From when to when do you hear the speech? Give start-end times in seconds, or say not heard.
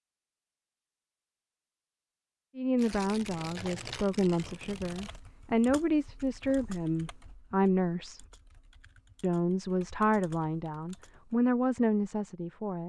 2.5-8.2, 9.2-12.8.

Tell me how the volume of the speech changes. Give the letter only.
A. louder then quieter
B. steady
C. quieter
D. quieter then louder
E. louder
B.